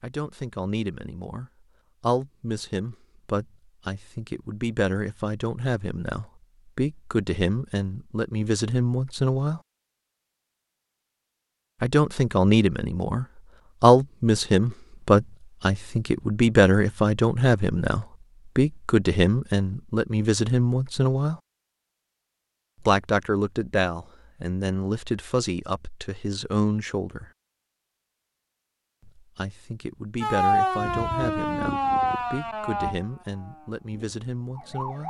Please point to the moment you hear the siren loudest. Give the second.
31 s.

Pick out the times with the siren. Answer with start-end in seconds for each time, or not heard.
30.2-35.0.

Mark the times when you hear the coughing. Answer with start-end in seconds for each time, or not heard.
not heard.